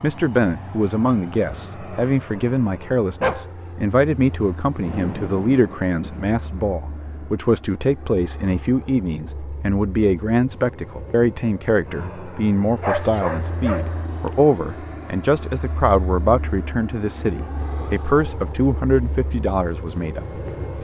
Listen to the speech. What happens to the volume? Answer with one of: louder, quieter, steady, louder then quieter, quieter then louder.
steady.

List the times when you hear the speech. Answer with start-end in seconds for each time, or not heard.
0.0-20.7.